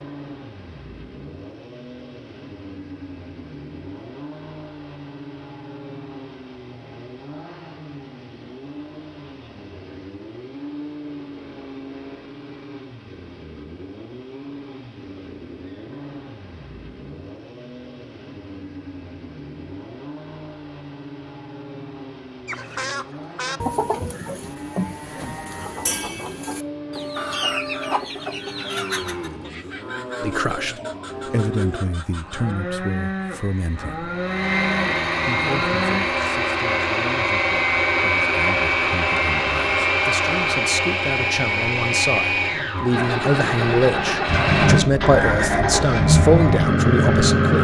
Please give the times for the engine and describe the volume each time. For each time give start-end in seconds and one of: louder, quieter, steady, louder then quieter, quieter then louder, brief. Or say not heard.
0.0-47.5 louder.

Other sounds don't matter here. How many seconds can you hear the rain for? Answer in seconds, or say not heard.
not heard.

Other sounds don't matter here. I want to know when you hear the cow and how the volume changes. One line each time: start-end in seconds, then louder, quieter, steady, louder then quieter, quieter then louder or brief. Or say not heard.
24.4-36.0 louder.